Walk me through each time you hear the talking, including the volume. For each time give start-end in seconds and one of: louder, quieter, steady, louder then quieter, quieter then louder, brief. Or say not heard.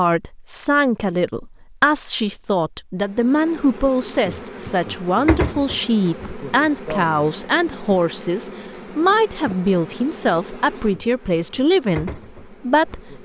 0.0-13.2 steady.